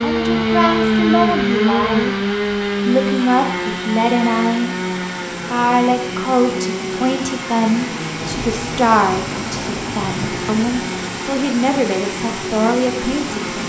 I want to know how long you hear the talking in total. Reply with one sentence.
The talking can be heard for 13 seconds in total.